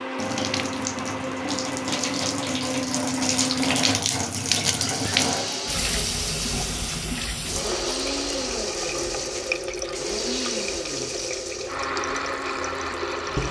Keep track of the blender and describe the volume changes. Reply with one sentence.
The volume of the blender stays about the same.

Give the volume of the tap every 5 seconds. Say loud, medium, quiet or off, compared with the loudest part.
loud, loud, medium.